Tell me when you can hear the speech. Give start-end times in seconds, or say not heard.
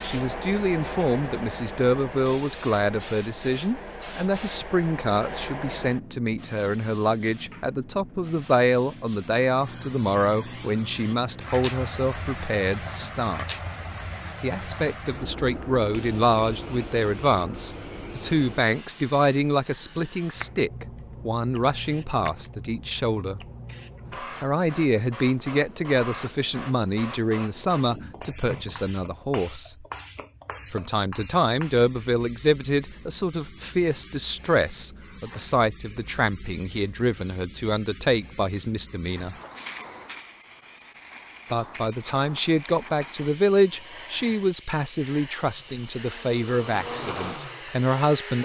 0.0-13.6, 14.4-23.4, 24.4-29.9, 30.7-39.4, 41.5-48.4.